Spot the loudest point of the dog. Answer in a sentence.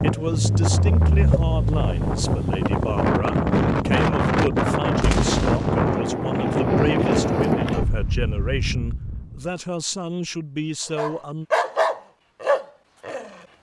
The volume of the dog peaks at 12 seconds.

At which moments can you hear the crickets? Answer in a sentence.
You can't hear the crickets here.